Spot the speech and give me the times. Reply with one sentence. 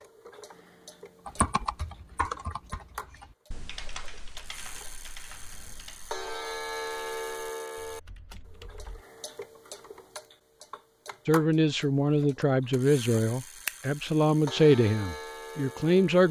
The speech can be heard from 11.2 to 16.2 s.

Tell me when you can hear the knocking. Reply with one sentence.
The knocking can't be heard in this clip.